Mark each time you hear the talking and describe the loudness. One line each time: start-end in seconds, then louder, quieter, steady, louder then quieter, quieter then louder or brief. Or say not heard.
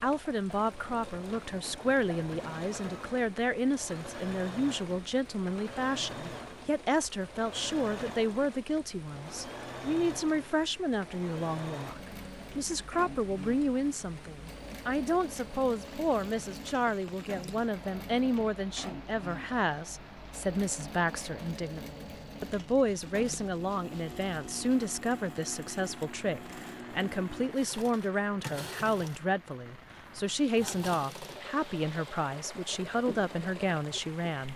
0.0-34.5 steady.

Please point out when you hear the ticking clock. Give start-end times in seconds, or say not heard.
not heard.